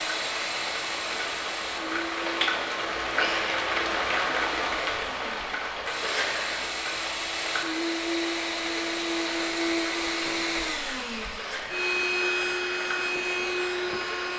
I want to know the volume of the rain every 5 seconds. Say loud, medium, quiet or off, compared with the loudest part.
loud, medium, medium.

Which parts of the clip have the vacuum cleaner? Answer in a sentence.
You can hear the vacuum cleaner from 0.0 to 14.3 s.